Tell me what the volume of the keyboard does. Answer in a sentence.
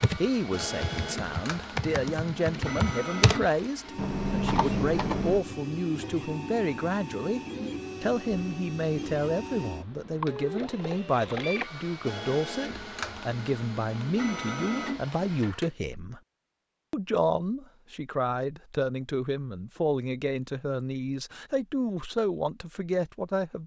The volume of the keyboard goes up.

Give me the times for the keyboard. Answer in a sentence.
The keyboard can be heard from 0.0 to 5.5 s.